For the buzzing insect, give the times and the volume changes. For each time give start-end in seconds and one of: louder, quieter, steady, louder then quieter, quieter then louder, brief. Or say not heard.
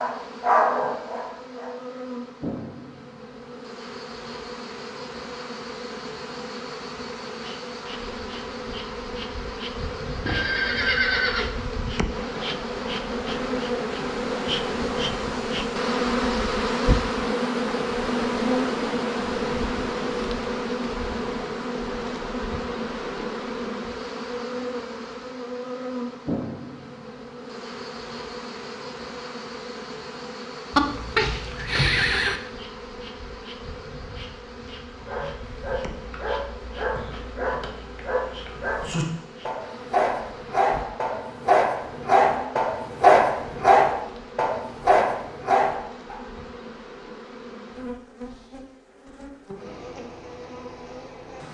0.0-51.4 louder then quieter.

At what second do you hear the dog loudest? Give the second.
43 s.